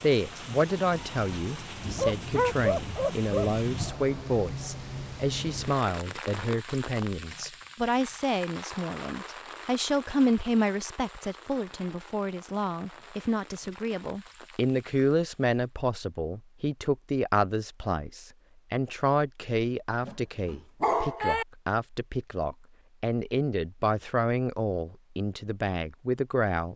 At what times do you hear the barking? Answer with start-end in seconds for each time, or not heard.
1.9-3.5, 20.0-21.4.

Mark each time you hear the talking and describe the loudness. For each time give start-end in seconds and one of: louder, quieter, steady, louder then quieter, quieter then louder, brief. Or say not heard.
0.0-26.7 steady.